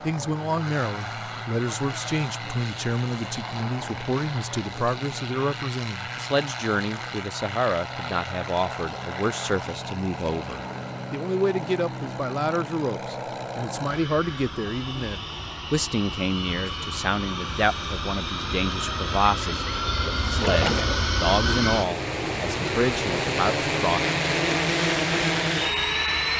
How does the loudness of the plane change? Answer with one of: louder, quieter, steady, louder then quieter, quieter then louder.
louder.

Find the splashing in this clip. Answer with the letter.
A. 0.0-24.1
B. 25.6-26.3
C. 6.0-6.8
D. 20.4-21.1
D.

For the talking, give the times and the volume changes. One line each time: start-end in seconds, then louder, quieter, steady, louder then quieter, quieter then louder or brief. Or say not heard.
0.0-24.1 steady.